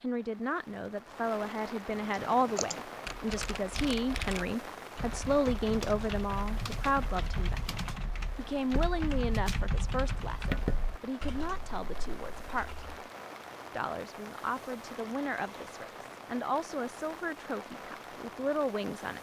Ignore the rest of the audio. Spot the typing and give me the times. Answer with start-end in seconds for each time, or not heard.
2.1-12.9.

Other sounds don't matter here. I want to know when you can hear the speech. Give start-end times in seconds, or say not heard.
0.0-7.6, 8.3-12.8, 13.7-19.1.